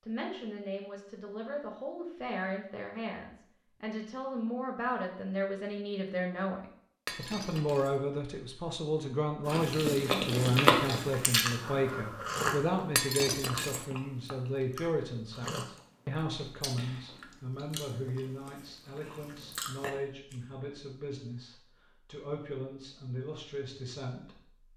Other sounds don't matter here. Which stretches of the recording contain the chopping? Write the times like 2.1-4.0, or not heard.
not heard.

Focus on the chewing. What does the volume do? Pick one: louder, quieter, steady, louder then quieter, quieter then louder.
quieter.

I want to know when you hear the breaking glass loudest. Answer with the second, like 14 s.
13 s.